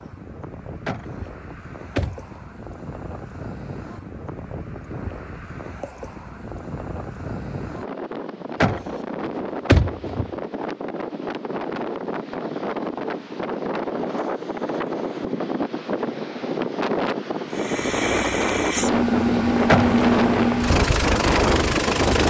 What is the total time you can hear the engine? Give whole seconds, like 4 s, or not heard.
5 s.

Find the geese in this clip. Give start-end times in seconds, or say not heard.
not heard.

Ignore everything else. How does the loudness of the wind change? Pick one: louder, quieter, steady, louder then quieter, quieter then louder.
louder.